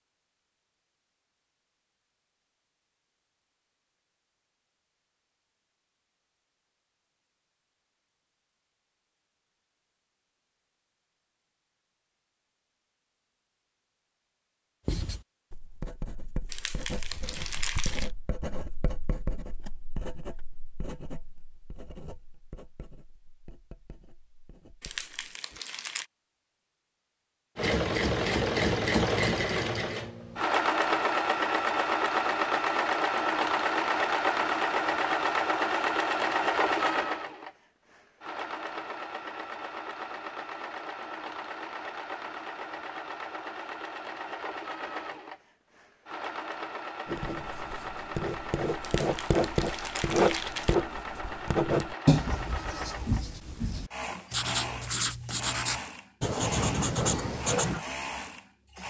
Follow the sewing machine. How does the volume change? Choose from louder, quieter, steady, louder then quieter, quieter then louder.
quieter.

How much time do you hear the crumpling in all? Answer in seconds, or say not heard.
5 s.